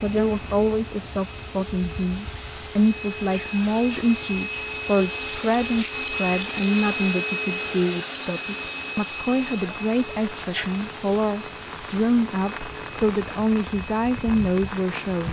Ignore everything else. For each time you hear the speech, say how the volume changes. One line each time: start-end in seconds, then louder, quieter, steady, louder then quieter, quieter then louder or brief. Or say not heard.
0.0-15.2 steady.